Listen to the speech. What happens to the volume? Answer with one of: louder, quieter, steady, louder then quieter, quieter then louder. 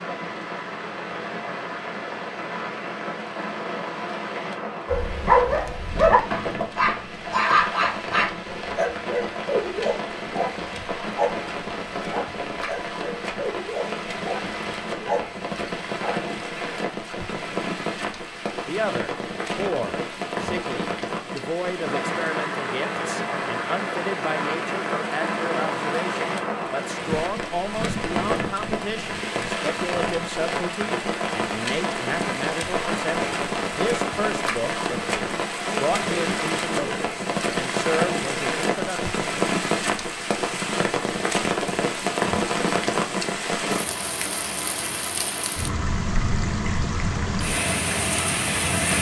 steady.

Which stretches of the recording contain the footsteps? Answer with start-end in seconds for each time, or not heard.
not heard.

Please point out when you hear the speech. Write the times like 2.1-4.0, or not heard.
18.6-39.1.